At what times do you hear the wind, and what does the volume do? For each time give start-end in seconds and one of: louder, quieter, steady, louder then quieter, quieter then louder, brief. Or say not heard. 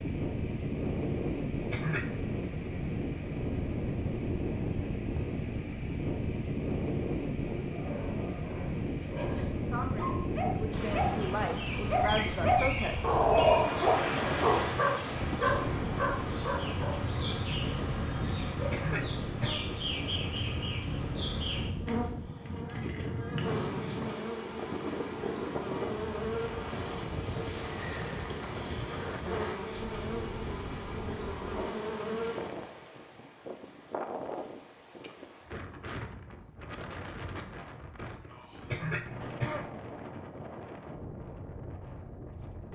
0.0-42.7 quieter.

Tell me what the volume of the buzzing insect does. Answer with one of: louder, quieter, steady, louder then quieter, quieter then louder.
steady.